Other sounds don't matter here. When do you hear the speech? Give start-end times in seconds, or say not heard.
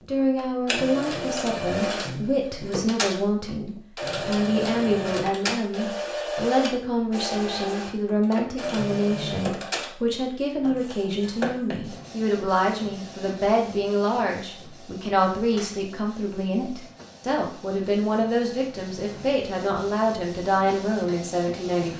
0.1-21.9.